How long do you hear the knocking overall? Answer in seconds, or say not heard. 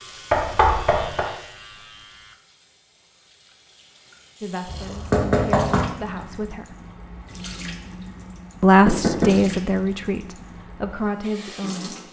3 s.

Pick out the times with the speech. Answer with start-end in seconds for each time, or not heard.
4.4-6.7, 8.6-11.9.